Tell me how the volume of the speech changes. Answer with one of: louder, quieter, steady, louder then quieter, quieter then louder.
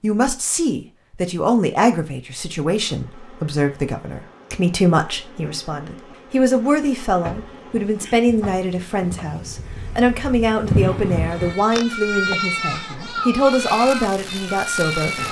steady.